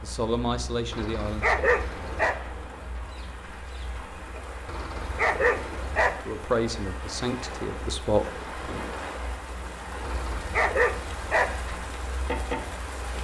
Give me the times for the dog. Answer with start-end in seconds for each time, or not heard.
0.9-2.4, 4.7-6.2, 10.0-11.7.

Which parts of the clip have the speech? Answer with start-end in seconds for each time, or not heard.
0.0-1.6, 6.2-8.8.